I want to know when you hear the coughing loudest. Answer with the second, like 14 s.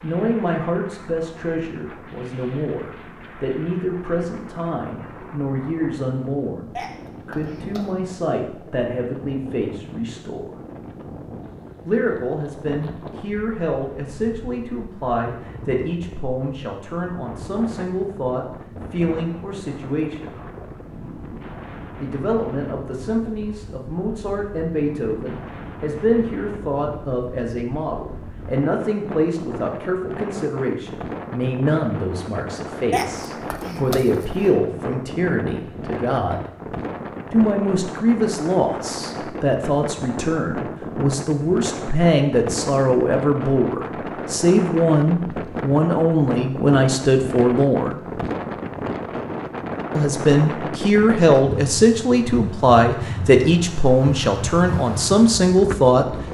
33 s.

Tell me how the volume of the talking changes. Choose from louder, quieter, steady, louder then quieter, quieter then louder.
louder.